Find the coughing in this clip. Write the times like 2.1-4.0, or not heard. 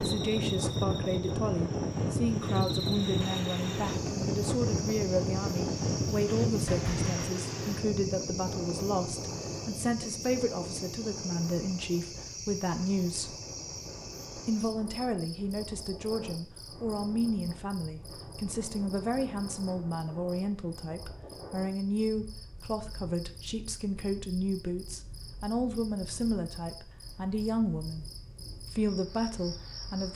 6.7-7.3.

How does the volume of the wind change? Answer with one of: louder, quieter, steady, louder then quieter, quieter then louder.
quieter.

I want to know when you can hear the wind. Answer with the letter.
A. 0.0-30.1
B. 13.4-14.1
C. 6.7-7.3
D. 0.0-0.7
A.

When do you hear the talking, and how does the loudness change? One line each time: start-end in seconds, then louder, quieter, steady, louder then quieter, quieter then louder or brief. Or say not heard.
0.0-13.4 steady
14.3-28.1 steady
28.7-30.1 brief.